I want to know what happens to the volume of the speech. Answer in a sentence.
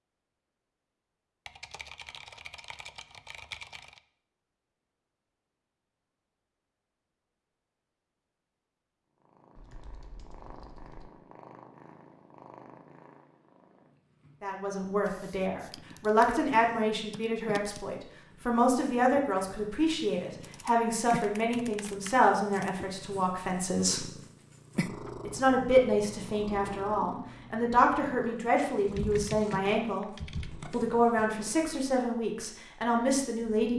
The volume of the speech stays about the same.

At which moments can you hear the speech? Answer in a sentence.
The speech can be heard from 14.4 to 24.1 s, from 25.2 to 30.1 s and from 30.7 to 33.7 s.